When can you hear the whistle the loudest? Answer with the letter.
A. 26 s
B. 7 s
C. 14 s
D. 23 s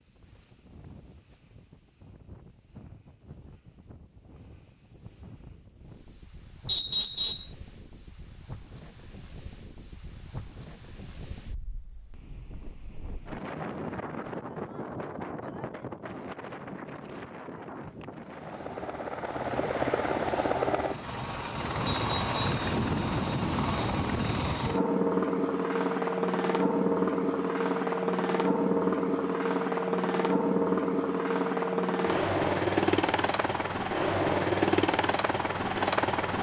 B.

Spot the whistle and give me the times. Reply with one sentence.
The whistle can be heard from 6.7 to 7.5 s and from 21.9 to 22.4 s.